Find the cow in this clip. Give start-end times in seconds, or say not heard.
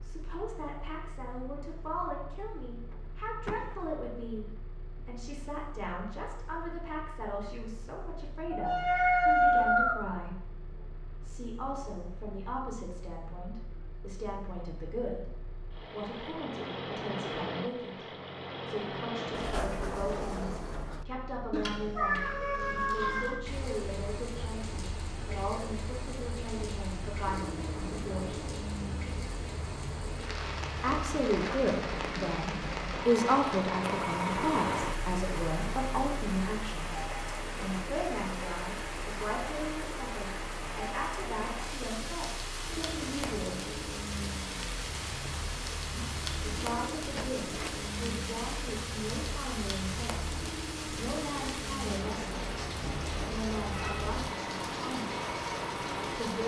not heard.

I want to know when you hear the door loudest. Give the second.
20 s.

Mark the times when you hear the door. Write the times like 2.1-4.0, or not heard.
2.9-4.0, 19.3-21.1, 47.1-47.9.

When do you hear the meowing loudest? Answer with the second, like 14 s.
9 s.